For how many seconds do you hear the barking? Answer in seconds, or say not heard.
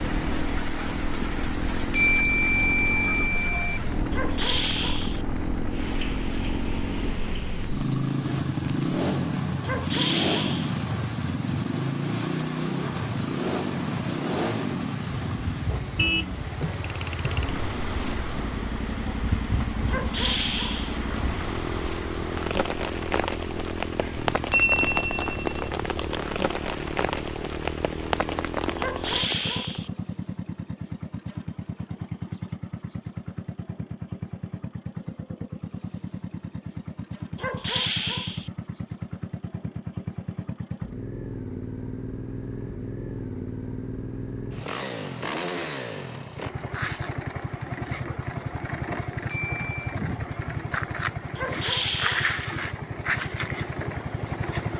7 s.